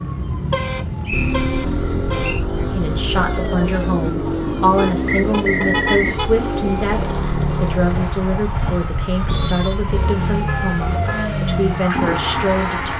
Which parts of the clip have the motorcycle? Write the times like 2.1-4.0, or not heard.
0.0-12.9.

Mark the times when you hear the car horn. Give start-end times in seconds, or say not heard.
0.3-2.4, 4.8-6.5, 10.4-11.3.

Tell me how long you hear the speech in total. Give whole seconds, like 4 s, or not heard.
10 s.